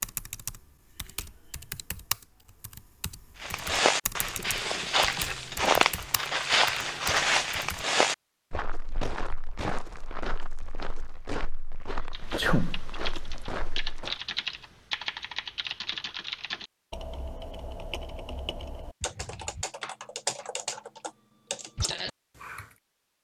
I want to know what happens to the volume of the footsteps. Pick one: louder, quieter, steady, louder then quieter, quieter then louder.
quieter.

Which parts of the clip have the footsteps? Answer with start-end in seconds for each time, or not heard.
3.4-14.2.